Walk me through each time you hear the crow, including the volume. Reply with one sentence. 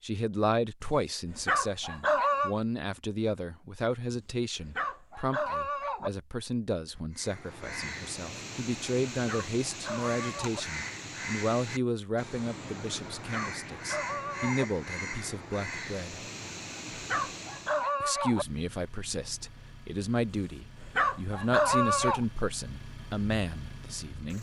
You can hear the crow from 7.2 to 17.9 s, at a steady volume.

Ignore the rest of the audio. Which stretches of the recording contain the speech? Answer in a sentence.
You can hear the speech from 0.0 to 16.2 s and from 18.0 to 24.3 s.